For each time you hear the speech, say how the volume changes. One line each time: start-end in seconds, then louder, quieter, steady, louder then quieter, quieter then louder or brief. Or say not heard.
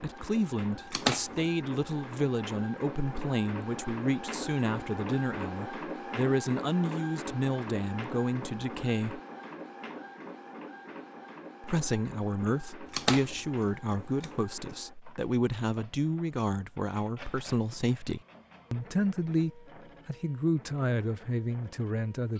0.0-9.2 steady
11.6-22.3 steady.